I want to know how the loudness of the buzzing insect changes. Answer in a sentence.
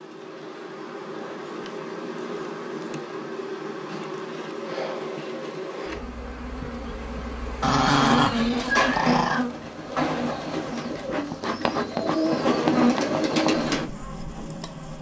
The loudness of the buzzing insect goes up.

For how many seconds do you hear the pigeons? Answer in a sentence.
You can hear the pigeons for 6 seconds altogether.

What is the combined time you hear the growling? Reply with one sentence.
The growling can be heard for 2 seconds in total.